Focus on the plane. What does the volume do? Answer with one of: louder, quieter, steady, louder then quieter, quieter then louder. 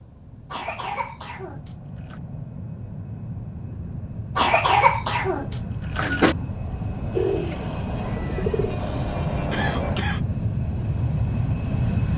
louder.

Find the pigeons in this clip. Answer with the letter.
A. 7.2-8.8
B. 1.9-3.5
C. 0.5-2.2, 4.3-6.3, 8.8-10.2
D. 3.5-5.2
A.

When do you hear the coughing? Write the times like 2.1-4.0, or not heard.
0.5-2.2, 4.3-6.3, 8.8-10.2.